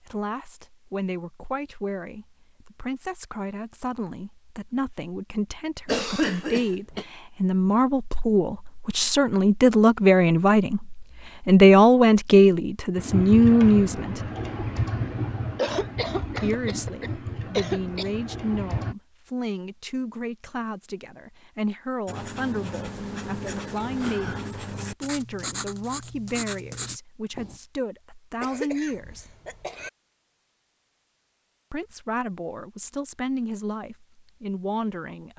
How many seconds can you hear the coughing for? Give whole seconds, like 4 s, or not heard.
5 s.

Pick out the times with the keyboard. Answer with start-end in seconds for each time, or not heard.
12.9-18.9.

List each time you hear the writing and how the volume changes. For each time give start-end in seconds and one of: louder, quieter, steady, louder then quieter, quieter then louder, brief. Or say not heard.
22.1-27.6 steady.